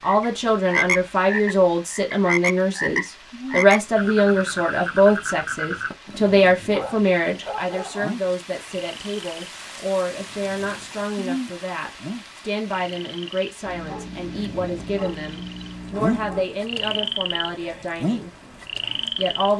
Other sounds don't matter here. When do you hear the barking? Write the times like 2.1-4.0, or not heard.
5.8-8.2, 13.7-16.4.